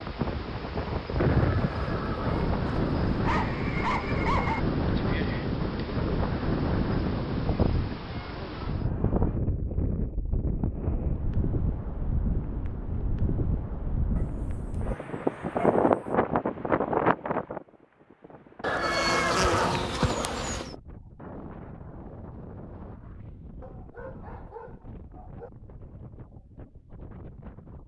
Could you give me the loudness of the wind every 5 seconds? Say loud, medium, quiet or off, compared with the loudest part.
loud, loud, medium, loud, quiet, quiet.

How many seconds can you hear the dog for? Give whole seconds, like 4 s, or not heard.
5 s.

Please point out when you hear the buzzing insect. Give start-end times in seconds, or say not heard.
0.0-8.9, 18.8-20.8.